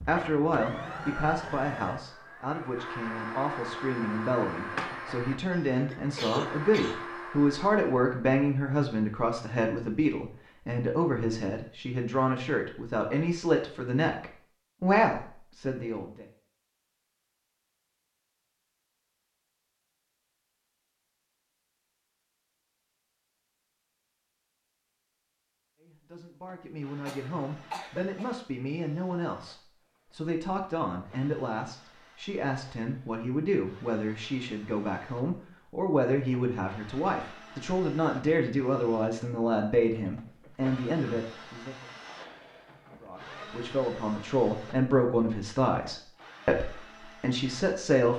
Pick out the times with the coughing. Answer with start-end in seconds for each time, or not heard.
5.5-7.0, 27.1-28.4.